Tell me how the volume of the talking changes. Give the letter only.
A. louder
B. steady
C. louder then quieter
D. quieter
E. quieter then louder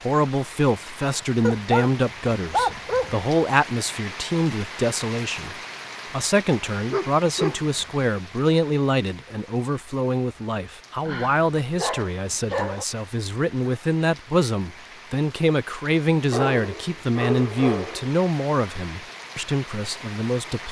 B.